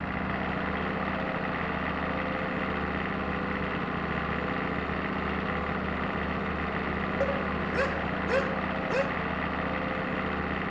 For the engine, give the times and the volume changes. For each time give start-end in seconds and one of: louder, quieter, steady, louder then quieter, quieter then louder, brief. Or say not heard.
0.0-10.6 steady.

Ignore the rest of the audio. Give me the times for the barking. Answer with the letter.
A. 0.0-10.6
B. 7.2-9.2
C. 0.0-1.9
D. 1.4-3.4
B.